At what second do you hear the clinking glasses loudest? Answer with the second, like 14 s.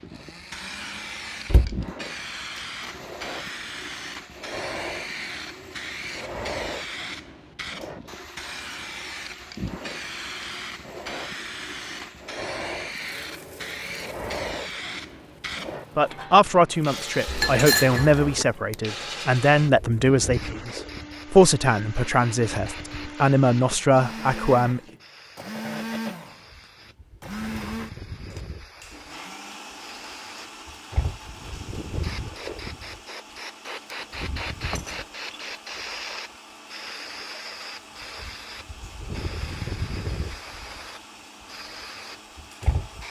18 s.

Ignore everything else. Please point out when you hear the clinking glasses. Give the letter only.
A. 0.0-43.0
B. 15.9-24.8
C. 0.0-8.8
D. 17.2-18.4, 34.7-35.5
D.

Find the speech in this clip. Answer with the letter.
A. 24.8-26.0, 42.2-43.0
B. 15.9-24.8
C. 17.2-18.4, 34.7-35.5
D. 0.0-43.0
B.